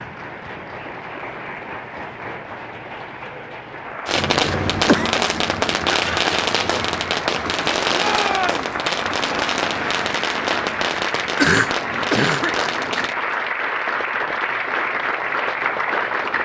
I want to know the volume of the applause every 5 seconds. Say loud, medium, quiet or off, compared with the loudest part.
medium, medium, loud, loud.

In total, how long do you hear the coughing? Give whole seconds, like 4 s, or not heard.
2 s.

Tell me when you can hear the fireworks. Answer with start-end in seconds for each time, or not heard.
4.0-13.2.